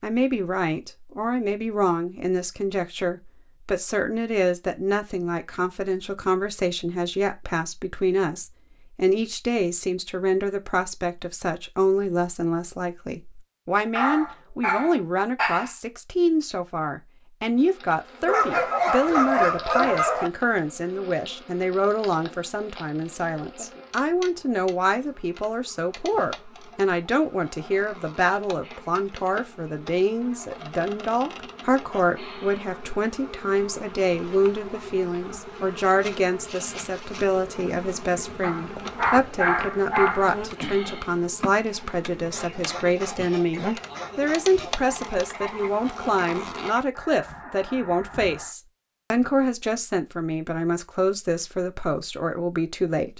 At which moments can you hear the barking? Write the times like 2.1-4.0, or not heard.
13.9-15.7, 18.2-20.3, 38.4-40.4.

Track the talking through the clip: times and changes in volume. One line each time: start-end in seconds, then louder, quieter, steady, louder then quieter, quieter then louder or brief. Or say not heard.
0.0-53.1 steady.